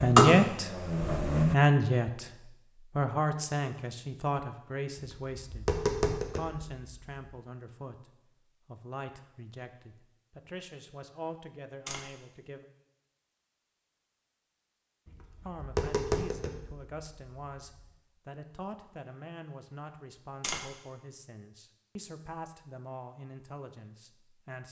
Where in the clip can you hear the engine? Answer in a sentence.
The engine can be heard from 0.0 to 1.6 s.